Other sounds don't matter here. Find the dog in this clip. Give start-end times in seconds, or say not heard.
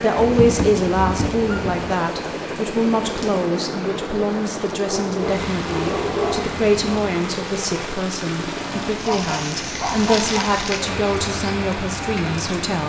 0.1-1.9, 4.8-7.0, 8.9-10.5.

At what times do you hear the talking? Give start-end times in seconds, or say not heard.
0.0-12.8.